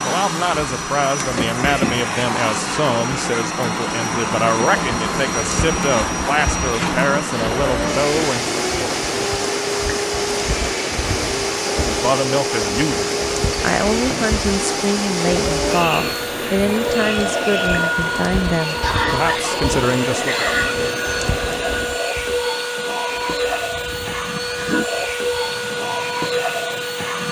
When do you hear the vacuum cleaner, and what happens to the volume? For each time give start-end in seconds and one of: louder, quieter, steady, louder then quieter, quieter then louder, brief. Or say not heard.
0.0-27.2 steady.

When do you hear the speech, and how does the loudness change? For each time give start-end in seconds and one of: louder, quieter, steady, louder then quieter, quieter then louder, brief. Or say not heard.
0.0-8.6 steady
11.8-20.5 steady.